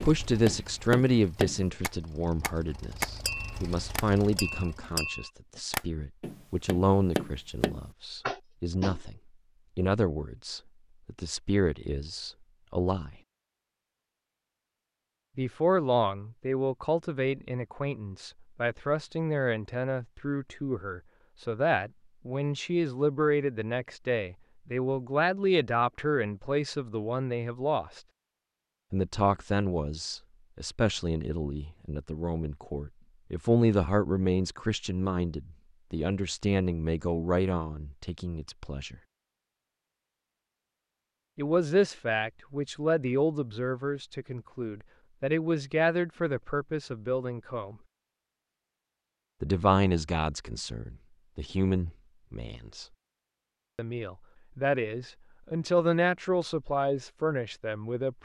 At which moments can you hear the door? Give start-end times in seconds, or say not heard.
not heard.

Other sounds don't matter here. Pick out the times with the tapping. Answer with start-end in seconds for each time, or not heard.
0.0-9.0.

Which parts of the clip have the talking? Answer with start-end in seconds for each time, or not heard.
0.0-13.2, 15.3-28.0, 28.9-39.0, 41.4-47.8, 49.4-52.9, 53.8-58.2.